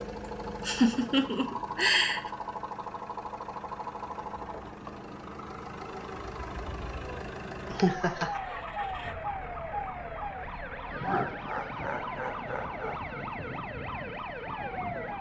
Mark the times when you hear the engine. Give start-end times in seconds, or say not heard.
0.0-15.1.